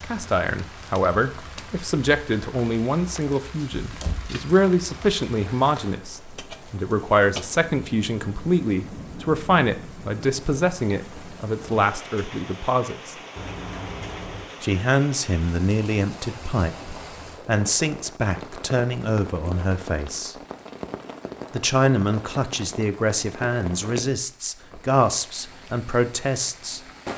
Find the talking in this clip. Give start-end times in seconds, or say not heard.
0.0-13.2, 14.6-20.4, 21.5-26.8.